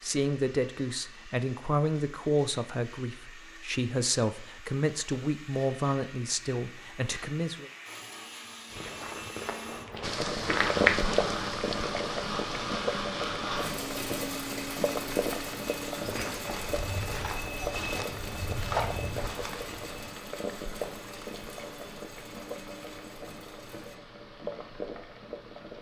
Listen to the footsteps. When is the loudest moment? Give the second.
11 s.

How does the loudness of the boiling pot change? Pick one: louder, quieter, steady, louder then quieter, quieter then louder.
quieter.